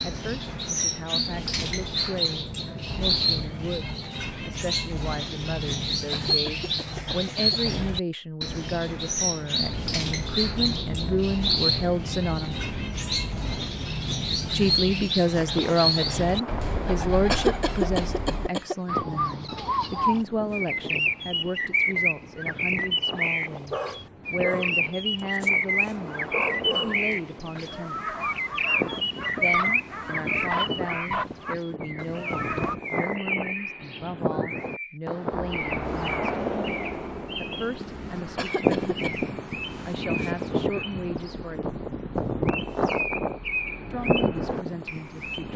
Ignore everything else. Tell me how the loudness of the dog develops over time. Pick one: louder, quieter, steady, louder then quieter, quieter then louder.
louder.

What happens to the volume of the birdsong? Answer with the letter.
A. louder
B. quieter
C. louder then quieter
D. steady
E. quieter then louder
B.